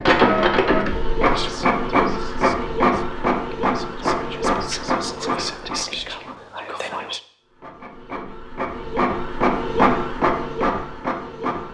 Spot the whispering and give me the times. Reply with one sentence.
The whispering can be heard from 1.2 to 7.2 s.